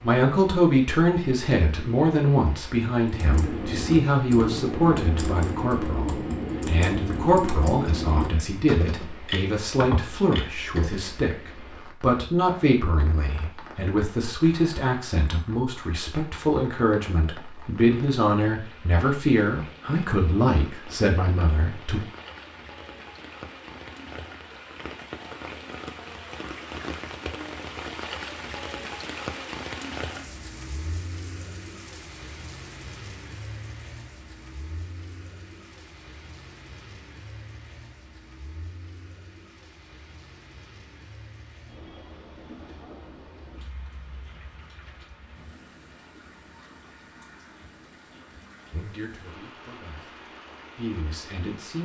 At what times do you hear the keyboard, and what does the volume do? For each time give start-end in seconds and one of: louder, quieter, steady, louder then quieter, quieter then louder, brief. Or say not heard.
3.1-11.1 steady.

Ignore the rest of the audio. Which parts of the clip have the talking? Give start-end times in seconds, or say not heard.
0.0-22.0, 48.7-51.8.